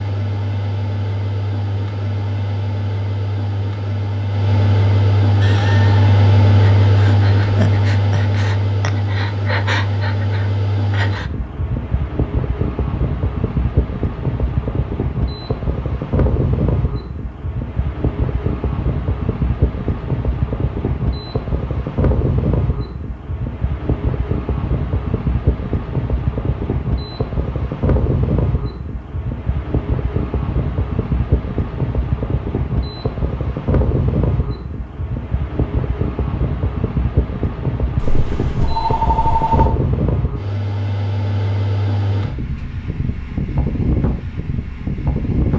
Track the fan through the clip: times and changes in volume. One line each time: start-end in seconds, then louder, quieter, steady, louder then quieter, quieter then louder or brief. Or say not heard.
0.0-45.5 steady.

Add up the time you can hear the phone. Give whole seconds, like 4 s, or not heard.
2 s.